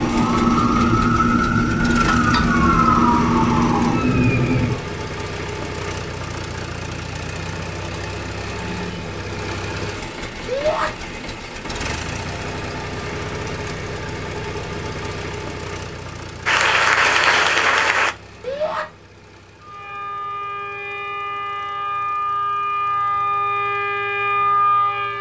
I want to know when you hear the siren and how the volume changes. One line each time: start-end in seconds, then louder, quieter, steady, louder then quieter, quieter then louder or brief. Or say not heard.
0.0-4.8 steady
19.6-25.1 louder.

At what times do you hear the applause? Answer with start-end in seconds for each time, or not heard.
16.4-18.1.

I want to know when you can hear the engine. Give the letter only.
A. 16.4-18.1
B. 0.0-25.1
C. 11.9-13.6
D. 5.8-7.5
B.